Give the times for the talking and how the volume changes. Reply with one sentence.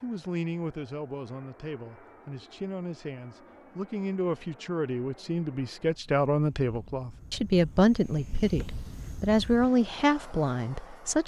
You can hear the talking from 0.0 to 11.2 s, getting louder.